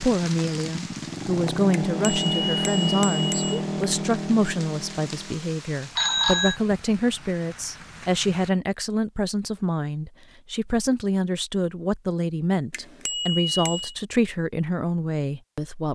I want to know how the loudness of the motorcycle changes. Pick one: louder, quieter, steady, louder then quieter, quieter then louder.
louder then quieter.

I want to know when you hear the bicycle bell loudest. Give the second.
6 s.